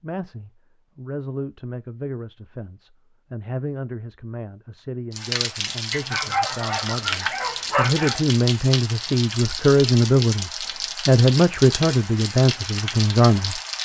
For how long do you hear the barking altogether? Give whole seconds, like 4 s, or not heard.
2 s.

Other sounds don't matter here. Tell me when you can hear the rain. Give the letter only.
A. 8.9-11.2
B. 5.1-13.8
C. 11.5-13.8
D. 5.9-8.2
B.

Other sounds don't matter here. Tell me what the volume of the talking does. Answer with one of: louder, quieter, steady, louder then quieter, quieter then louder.
louder.